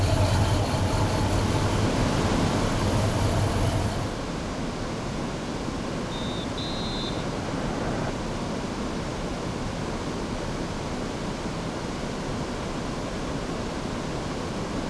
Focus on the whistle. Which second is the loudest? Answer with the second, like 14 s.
8 s.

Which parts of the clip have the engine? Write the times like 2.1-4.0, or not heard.
0.0-4.2.